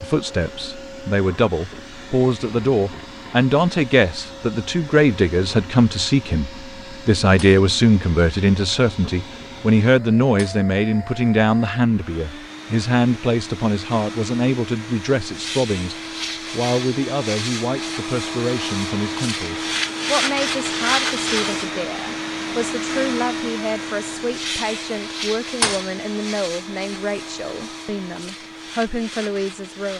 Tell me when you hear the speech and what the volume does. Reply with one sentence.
You can hear the speech from 0.0 to 29.9 s, getting quieter.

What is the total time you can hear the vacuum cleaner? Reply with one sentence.
The vacuum cleaner can be heard for 30 seconds in total.